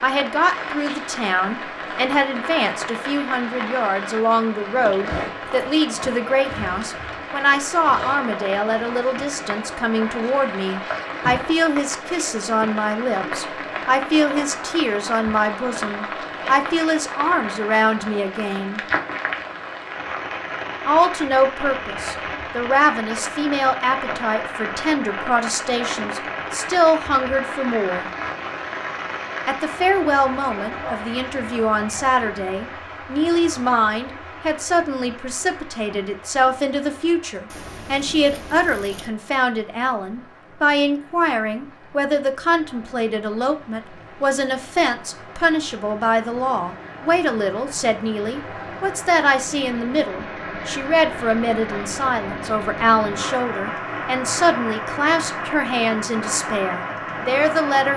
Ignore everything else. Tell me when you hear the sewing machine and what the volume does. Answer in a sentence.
The sewing machine can't be heard in this clip.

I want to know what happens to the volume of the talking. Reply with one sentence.
The loudness of the talking stays about the same.